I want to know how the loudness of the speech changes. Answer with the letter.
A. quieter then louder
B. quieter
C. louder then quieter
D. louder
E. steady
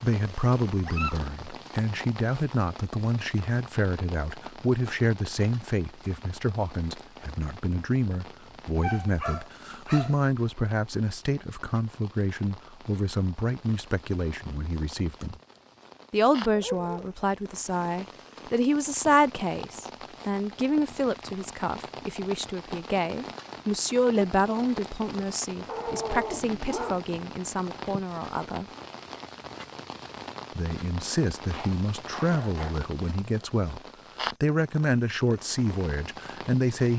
E.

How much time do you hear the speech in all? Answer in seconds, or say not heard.
34 s.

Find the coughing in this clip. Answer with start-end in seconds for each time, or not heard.
not heard.